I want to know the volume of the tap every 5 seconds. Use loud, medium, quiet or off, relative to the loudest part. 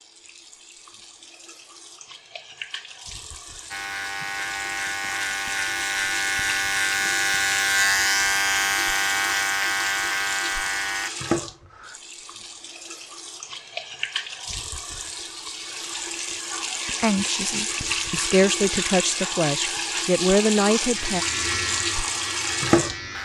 quiet, medium, medium, loud, loud.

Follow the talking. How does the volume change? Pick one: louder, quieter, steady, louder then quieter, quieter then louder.
louder.